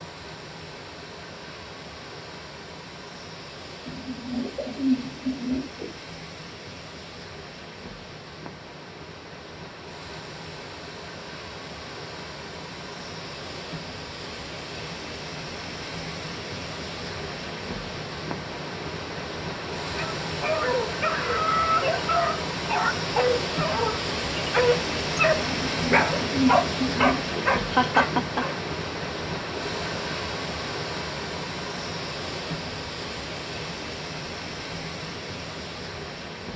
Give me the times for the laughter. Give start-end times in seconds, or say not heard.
27.7-28.4.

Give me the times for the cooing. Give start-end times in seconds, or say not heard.
3.9-5.8, 25.5-27.4.